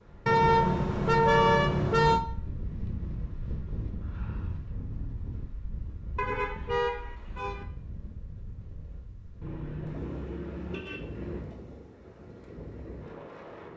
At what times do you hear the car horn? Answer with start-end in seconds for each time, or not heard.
0.2-2.2, 6.2-7.7, 9.4-11.4.